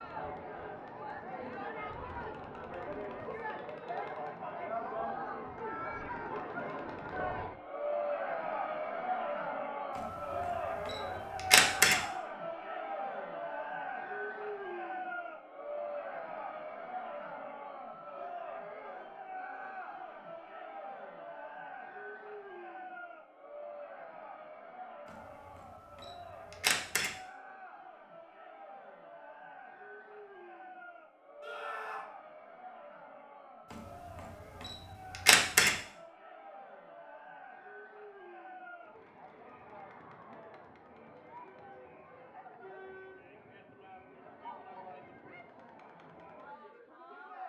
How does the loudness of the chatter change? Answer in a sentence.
The volume of the chatter goes down.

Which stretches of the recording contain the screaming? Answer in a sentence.
The screaming can be heard from 31.4 to 32.1 s.